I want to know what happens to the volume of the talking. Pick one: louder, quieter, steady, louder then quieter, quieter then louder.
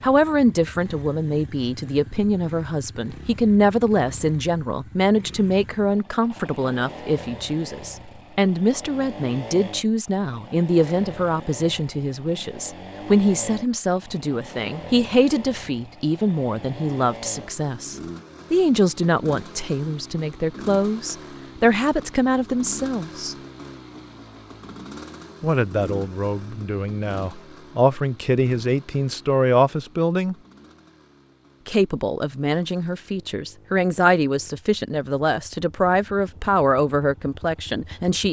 steady.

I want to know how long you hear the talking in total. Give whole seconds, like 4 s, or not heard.
35 s.